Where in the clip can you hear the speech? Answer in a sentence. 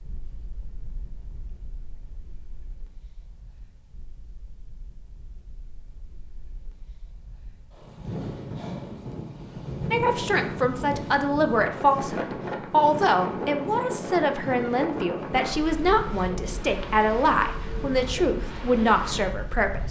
The speech can be heard from 9.9 to 19.8 s.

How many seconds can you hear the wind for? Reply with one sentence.
You can hear the wind for 20 seconds altogether.